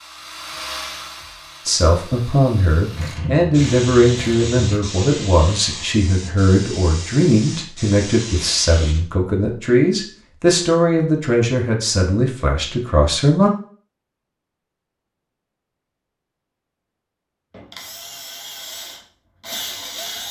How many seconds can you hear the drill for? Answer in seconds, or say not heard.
6 s.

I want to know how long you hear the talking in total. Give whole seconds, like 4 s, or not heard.
12 s.